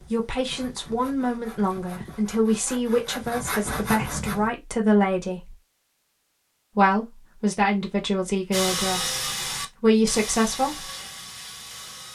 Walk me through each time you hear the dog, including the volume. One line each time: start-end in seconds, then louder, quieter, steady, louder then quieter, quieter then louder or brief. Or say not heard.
not heard.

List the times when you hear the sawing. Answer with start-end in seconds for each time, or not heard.
0.0-4.5, 8.5-12.0.